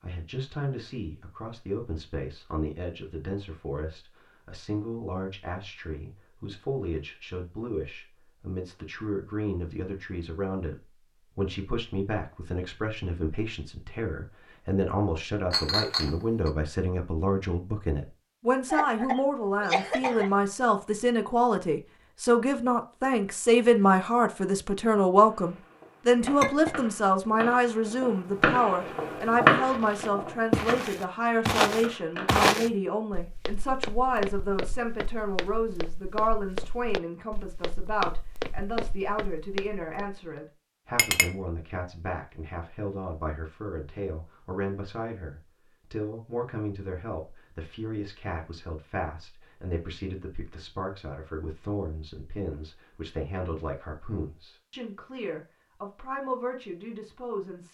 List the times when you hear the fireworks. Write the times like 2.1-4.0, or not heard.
25.3-32.4.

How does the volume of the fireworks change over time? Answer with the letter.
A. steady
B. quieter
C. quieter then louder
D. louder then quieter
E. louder
D.